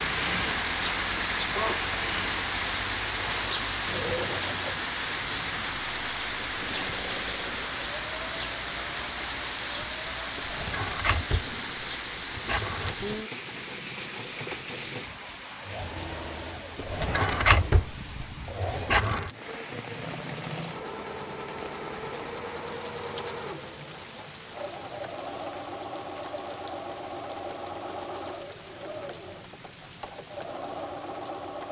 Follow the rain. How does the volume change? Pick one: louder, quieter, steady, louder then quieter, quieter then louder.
quieter.